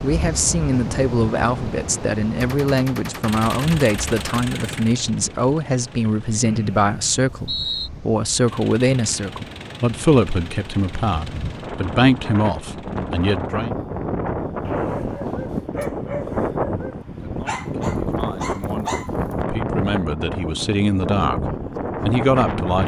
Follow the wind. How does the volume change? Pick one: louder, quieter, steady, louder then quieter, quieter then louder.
quieter then louder.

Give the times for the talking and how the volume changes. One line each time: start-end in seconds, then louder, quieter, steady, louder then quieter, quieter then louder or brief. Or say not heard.
0.0-13.7 steady
17.3-22.8 louder.